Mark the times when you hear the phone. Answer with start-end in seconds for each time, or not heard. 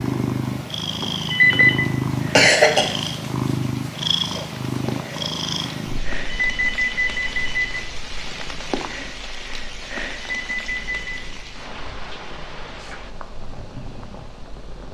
1.3-1.9, 6.3-7.8, 10.2-11.2.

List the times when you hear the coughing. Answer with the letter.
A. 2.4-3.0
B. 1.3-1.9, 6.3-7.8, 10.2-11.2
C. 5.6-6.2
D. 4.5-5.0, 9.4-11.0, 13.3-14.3
A.